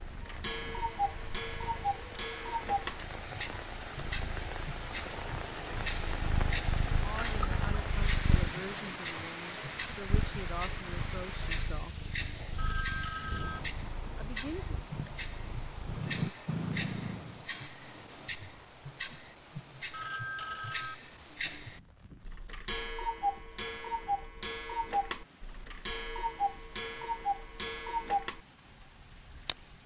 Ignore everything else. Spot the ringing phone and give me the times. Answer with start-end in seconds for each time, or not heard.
2.3-2.8, 12.6-13.6, 19.9-20.9.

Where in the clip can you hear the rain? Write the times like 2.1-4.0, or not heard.
0.0-29.8.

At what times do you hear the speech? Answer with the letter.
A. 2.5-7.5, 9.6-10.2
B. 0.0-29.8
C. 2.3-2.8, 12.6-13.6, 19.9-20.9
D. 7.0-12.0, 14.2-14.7
D.